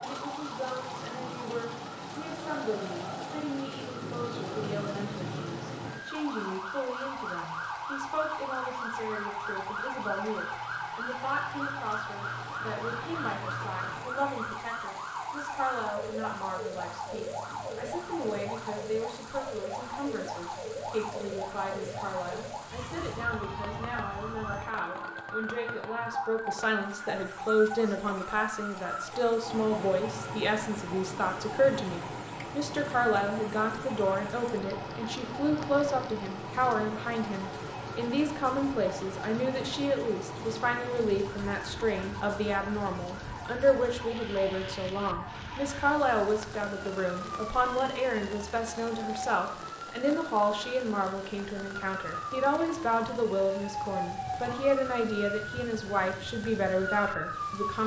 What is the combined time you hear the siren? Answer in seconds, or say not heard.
58 s.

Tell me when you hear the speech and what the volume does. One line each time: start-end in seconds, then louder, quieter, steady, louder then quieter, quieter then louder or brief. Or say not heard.
0.0-57.8 louder.